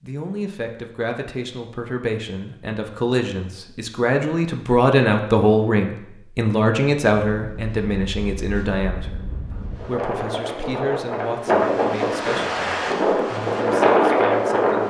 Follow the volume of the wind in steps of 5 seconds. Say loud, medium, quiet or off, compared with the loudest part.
off, quiet, loud.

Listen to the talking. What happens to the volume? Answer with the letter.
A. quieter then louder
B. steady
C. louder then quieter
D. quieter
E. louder
C.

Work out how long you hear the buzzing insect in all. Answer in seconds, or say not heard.
not heard.